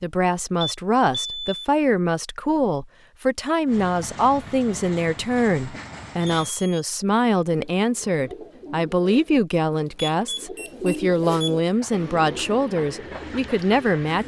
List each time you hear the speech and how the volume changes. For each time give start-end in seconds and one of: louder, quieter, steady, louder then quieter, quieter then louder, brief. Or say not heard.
0.0-14.2 steady.